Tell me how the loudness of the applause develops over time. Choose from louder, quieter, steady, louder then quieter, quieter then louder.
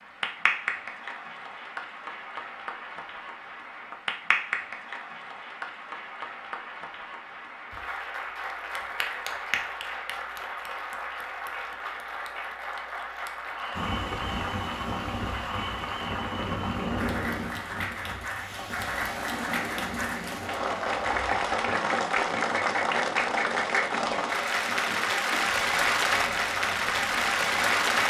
louder.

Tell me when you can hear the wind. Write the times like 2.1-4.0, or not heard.
13.7-28.0.